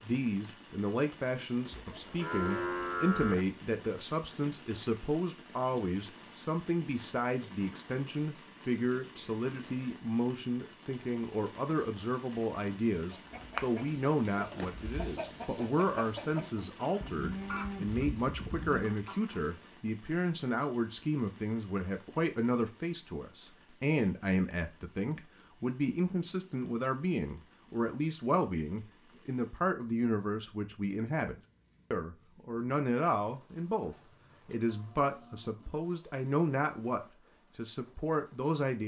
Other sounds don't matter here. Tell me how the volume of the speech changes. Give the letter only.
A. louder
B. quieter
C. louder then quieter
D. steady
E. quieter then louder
D.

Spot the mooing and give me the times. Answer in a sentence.
The mooing can be heard from 1.7 to 3.5 s, from 17.0 to 18.9 s and from 33.8 to 35.8 s.